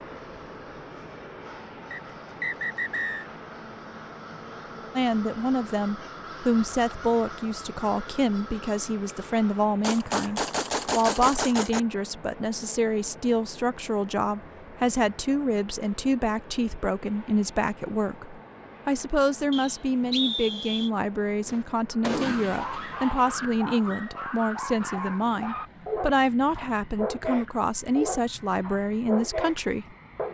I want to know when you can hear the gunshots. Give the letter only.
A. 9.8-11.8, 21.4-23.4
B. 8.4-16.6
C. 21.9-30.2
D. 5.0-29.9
A.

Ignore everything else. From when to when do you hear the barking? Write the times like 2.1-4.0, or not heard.
21.9-30.2.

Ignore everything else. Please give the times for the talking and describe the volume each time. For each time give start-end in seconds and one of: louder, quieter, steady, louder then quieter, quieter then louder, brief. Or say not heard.
5.0-29.9 steady.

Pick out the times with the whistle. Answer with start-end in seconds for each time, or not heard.
1.9-3.2, 19.5-20.9.